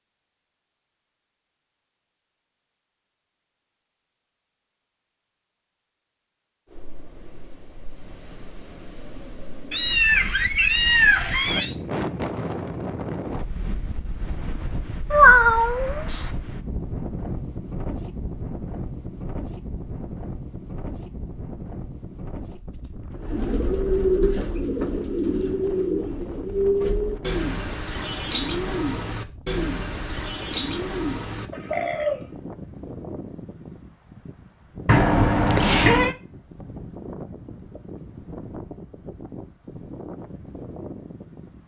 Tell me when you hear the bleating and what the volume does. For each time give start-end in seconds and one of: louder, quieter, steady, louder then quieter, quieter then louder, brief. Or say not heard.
not heard.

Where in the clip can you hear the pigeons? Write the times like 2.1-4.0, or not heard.
23.1-32.3.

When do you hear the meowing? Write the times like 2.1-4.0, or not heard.
9.7-11.8, 15.1-16.3, 34.9-36.1.